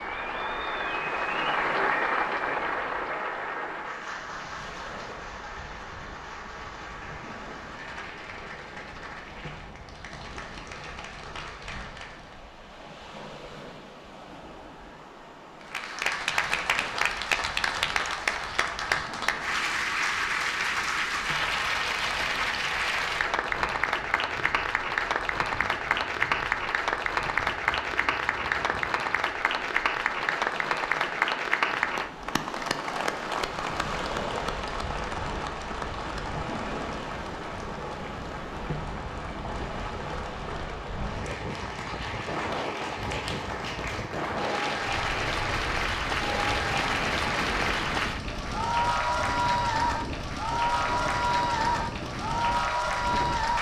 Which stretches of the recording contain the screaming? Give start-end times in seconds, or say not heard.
not heard.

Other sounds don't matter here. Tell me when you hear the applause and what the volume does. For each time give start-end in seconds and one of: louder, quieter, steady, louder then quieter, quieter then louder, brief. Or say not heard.
0.0-12.4 quieter
15.6-53.5 quieter then louder.